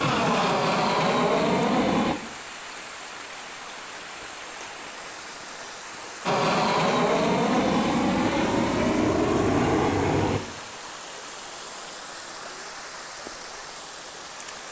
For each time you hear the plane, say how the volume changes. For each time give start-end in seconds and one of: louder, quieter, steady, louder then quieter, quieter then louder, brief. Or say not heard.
0.0-2.1 brief
6.2-10.4 steady.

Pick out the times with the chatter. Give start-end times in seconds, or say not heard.
not heard.